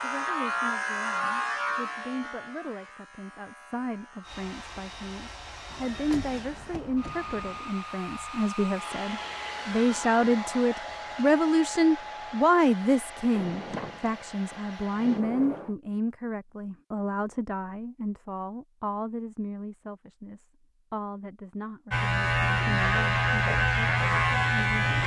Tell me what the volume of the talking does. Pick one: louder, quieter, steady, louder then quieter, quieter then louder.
louder then quieter.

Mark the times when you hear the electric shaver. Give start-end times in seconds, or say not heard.
0.0-6.8, 21.9-25.0.